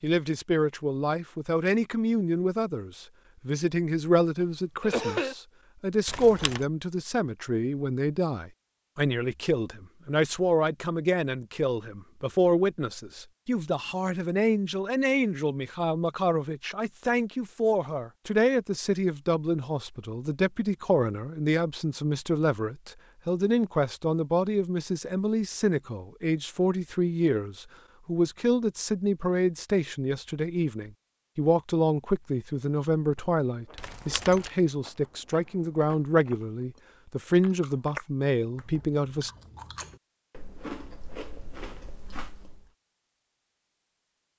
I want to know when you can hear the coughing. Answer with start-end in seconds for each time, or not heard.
4.8-5.3.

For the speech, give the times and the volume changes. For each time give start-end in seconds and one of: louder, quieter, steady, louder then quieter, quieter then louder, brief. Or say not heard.
0.0-39.3 steady.